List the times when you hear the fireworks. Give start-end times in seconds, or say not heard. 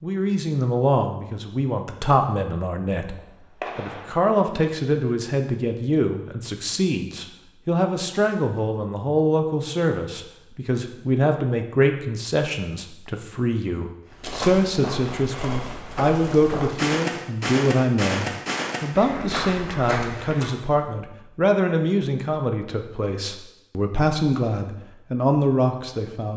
3.0-4.6.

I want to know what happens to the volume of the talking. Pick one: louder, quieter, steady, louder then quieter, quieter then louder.
steady.